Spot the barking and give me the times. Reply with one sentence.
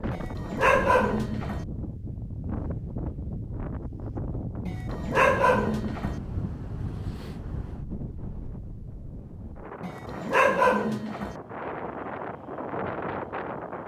The barking can be heard from 0.1 to 1.6 s, from 4.7 to 6.2 s and from 9.8 to 11.3 s.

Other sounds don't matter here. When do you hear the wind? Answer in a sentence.
You can hear the wind from 0.0 to 13.8 s.